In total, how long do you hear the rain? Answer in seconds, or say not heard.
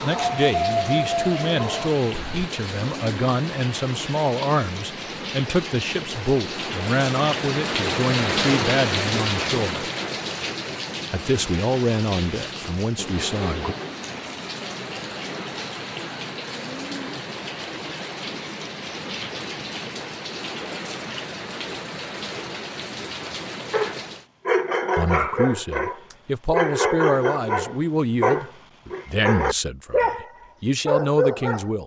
24 s.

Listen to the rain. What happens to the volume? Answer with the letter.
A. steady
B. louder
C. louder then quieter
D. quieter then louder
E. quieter
C.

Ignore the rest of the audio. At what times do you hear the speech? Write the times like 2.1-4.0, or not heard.
0.0-9.8, 11.1-13.8, 24.9-31.8.